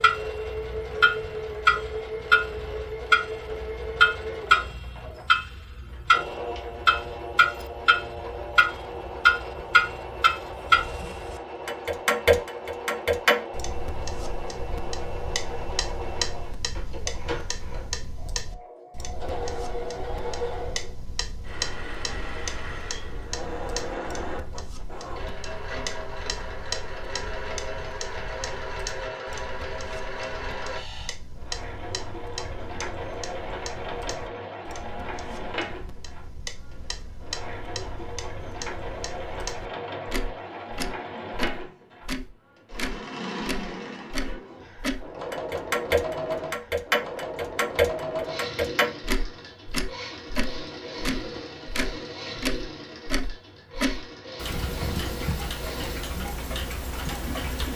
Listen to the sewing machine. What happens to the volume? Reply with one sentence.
The loudness of the sewing machine stays about the same.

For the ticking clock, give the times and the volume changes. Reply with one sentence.
The ticking clock can be heard from 0.0 to 57.7 s, getting quieter then louder.